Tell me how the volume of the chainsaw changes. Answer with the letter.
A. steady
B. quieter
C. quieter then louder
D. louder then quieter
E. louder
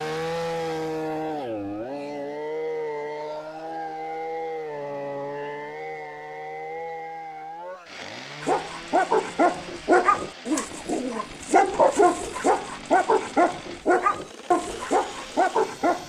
B.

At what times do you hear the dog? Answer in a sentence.
The dog can be heard from 8.4 to 16.0 s.